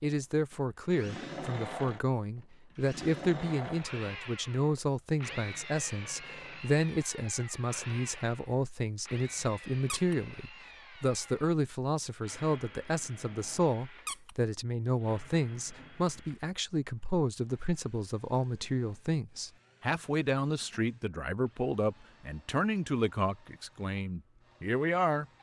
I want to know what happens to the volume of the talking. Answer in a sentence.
The volume of the talking stays about the same.